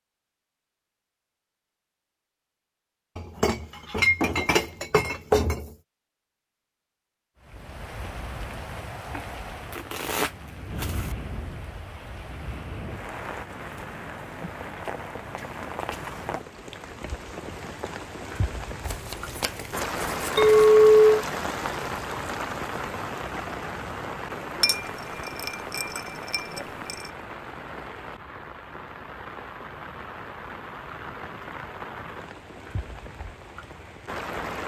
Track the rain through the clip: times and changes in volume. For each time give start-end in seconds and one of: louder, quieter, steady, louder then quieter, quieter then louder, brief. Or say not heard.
7.4-34.6 louder then quieter.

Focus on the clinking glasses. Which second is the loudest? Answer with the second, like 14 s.
21 s.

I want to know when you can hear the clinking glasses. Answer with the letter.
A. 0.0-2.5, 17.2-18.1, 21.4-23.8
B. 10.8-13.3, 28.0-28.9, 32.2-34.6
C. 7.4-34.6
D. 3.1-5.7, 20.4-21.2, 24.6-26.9
D.